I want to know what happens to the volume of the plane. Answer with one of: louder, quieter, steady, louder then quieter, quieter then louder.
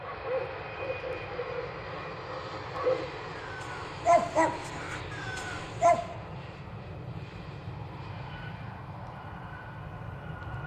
steady.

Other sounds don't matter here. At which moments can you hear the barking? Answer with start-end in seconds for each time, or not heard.
0.0-6.0.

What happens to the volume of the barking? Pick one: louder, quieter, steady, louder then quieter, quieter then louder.
louder then quieter.